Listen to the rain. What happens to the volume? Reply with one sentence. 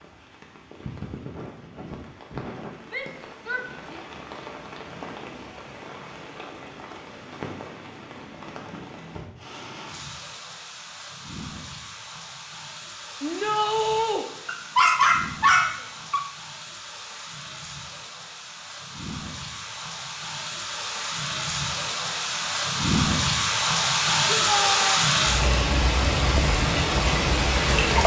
The loudness of the rain goes up.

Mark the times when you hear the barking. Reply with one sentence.
You can hear the barking from 14.4 to 16.2 s.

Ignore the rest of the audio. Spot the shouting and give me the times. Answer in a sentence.
The shouting can be heard from 2.9 to 4.0 s, from 13.2 to 14.2 s and from 24.2 to 25.1 s.